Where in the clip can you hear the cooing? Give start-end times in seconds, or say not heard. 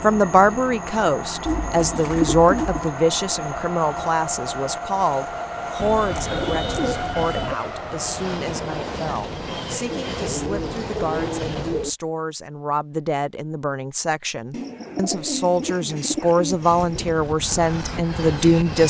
1.4-2.9, 5.8-7.6, 9.9-11.9, 14.5-17.2.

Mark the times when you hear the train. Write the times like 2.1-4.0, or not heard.
0.0-11.9, 16.6-18.8.